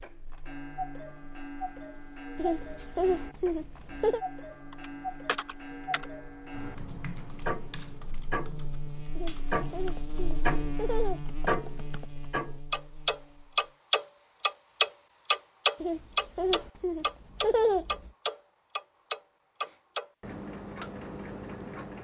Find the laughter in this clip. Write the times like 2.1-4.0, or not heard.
2.4-4.2, 9.2-11.3, 15.8-18.1.